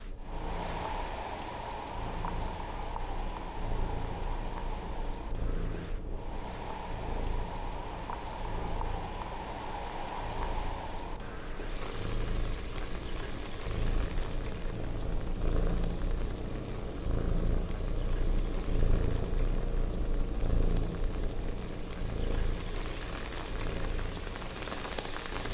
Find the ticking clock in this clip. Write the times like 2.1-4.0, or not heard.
not heard.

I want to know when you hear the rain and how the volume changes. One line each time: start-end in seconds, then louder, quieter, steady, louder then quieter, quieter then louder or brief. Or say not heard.
0.0-25.5 quieter then louder.